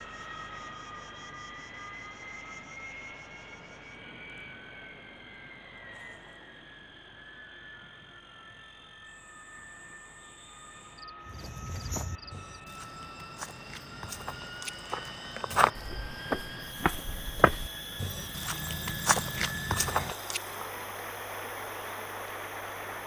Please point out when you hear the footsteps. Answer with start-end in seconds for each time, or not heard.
11.2-20.6.